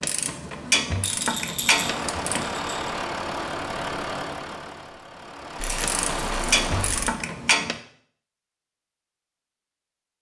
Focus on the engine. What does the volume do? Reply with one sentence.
The loudness of the engine goes down, then up.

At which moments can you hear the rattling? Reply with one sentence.
You can hear the rattling from 1.0 to 2.9 s and from 5.5 to 7.0 s.